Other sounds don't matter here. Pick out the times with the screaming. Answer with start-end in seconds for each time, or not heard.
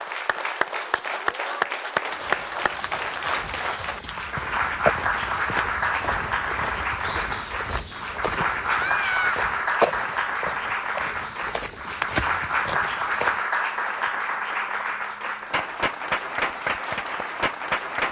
8.7-9.4.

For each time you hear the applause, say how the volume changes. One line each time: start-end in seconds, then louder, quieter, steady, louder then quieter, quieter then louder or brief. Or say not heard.
0.0-18.0 steady.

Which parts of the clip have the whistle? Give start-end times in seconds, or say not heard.
not heard.